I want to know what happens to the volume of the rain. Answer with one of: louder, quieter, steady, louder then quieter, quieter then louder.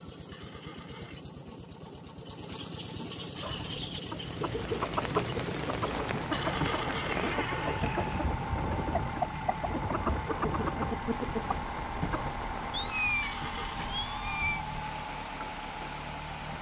quieter.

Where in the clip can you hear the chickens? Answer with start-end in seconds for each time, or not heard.
3.4-12.3.